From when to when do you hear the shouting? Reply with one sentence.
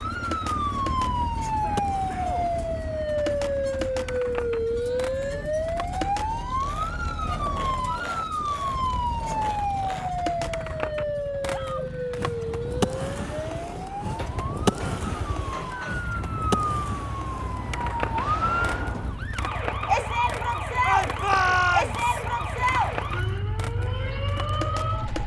You can hear the shouting from 1.5 to 2.5 s, from 11.4 to 11.9 s and from 20.9 to 22.2 s.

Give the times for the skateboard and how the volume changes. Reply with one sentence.
The skateboard can be heard from 0.0 to 25.2 s, getting louder then quieter.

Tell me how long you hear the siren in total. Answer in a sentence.
You can hear the siren for 25 seconds altogether.